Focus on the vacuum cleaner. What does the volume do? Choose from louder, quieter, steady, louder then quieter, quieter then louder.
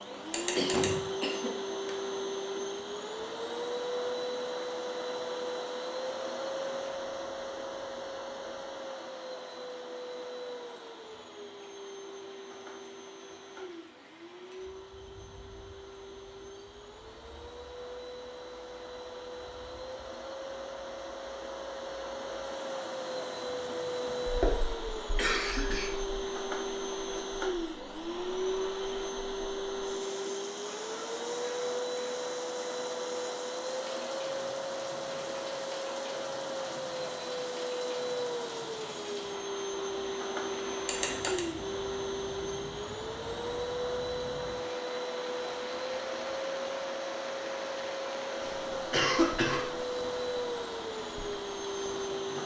quieter then louder.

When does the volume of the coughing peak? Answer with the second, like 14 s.
49 s.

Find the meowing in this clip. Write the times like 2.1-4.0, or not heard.
0.3-0.9, 40.9-41.5.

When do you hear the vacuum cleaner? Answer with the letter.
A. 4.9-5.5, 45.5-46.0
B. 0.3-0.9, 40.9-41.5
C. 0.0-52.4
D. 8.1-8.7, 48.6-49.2
C.